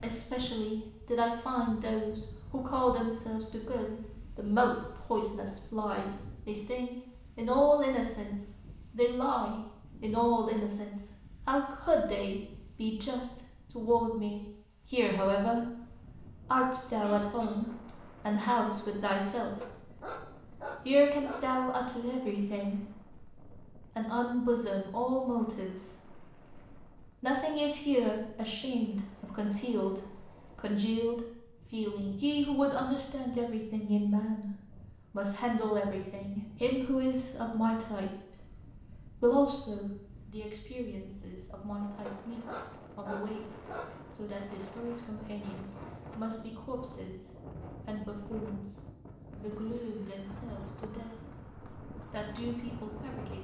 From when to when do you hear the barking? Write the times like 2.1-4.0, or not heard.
19.6-21.5, 42.0-44.0.